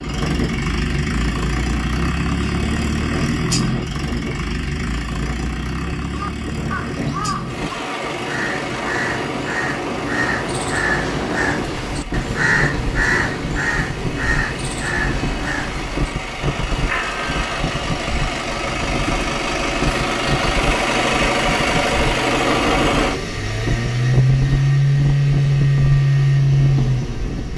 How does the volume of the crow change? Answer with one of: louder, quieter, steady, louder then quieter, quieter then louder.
louder then quieter.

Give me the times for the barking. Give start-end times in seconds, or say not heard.
not heard.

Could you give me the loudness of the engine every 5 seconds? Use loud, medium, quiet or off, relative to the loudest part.
medium, quiet, quiet, medium, loud, loud.